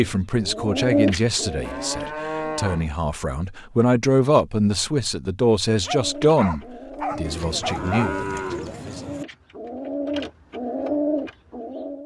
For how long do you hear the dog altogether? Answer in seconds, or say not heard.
2 s.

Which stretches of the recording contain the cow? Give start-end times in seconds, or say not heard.
1.6-2.9, 7.2-9.2.